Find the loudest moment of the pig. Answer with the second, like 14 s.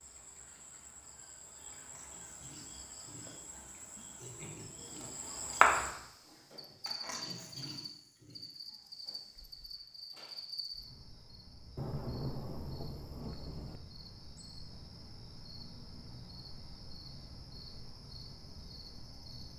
7 s.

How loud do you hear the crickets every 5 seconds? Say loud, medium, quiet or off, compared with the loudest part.
quiet, loud, quiet, quiet.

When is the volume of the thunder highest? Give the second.
12 s.